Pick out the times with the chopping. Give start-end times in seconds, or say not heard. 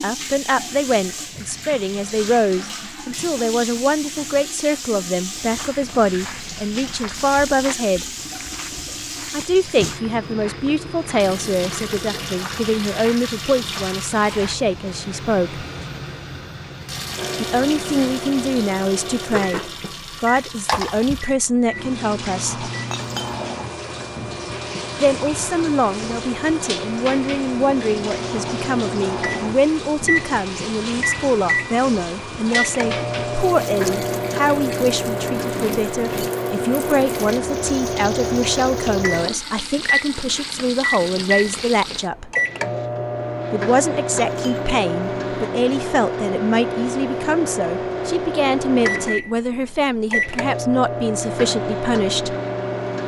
not heard.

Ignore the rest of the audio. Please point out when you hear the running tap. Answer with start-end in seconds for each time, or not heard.
0.0-42.1.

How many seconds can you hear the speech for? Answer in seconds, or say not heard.
46 s.